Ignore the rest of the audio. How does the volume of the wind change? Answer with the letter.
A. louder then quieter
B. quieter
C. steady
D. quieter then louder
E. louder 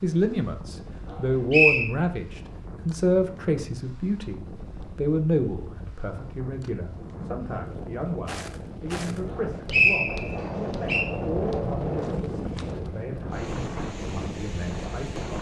E.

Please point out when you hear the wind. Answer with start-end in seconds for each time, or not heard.
0.0-15.3.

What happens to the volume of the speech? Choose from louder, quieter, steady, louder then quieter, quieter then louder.
quieter.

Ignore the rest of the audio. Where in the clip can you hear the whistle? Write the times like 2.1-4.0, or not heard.
1.1-1.9, 9.7-11.1.